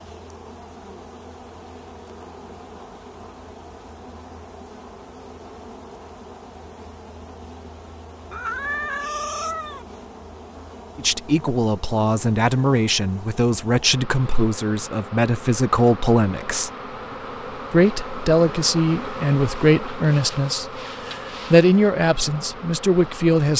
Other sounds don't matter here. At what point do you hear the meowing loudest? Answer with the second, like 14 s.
9 s.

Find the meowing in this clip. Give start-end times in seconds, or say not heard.
8.3-9.8.